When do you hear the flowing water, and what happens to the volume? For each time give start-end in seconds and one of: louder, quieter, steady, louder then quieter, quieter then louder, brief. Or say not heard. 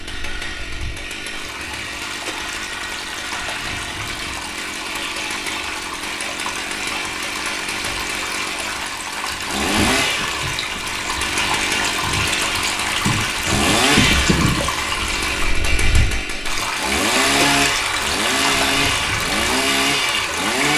0.0-20.7 louder.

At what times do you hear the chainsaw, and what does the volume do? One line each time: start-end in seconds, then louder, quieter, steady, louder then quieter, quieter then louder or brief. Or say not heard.
0.0-20.7 louder.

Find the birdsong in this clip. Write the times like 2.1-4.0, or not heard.
not heard.